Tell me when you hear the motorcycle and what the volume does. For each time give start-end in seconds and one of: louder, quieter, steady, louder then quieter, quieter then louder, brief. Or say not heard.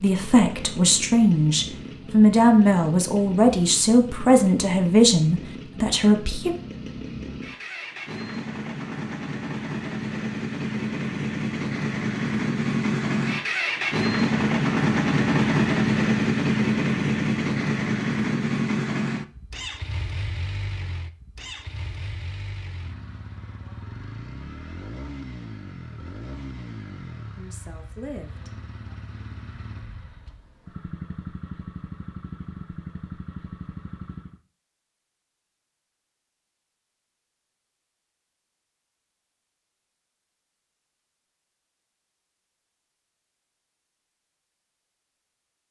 0.0-34.4 louder then quieter.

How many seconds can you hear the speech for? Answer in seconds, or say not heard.
8 s.